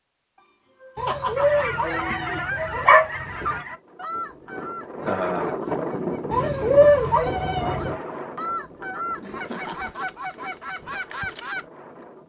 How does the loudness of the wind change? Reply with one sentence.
The loudness of the wind goes down.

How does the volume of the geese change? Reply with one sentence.
The volume of the geese goes down, then up.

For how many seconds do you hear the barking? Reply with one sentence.
You can hear the barking for 4 seconds altogether.